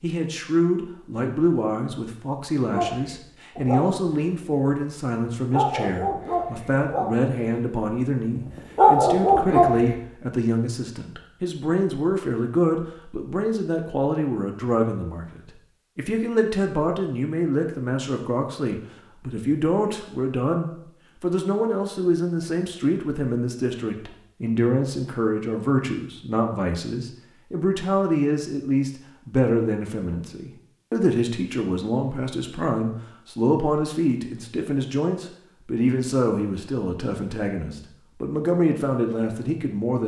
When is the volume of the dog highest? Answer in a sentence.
The loudest moment of the dog is at 9 seconds.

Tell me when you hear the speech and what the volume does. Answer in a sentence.
The speech can be heard from 0.0 to 40.0 s, at a steady volume.